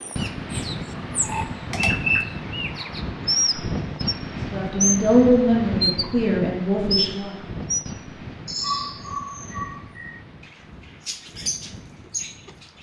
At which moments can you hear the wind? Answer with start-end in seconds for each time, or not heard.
0.0-12.7.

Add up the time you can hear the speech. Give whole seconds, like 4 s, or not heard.
3 s.